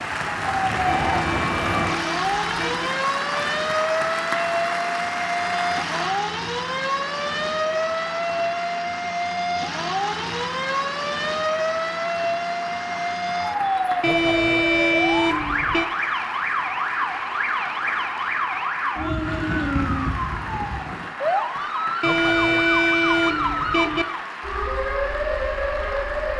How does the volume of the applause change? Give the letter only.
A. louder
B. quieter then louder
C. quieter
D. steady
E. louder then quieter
C.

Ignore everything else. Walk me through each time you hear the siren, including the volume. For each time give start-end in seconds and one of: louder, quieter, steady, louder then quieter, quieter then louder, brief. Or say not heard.
0.0-26.3 steady.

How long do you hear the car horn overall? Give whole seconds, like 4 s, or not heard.
6 s.